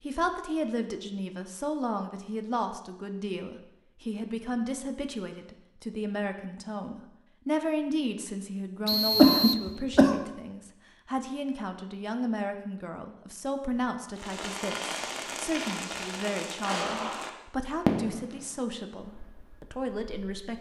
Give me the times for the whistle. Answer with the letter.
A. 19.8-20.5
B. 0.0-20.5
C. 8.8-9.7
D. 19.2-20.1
C.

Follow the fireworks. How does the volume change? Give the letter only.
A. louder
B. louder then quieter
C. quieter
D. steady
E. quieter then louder
B.